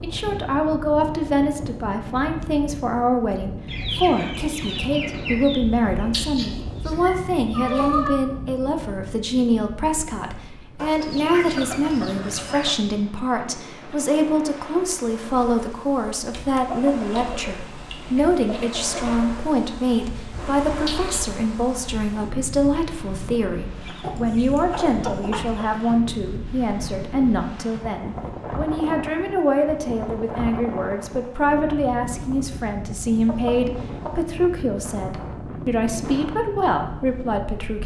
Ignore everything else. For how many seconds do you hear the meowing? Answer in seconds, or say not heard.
4 s.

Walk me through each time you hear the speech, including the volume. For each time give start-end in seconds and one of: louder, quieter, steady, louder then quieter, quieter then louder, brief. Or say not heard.
0.0-37.8 steady.